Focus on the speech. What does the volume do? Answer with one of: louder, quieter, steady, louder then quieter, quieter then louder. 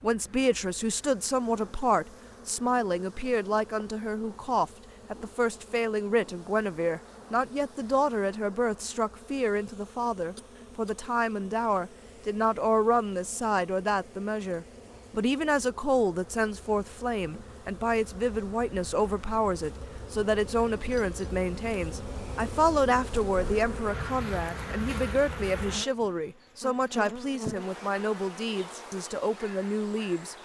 steady.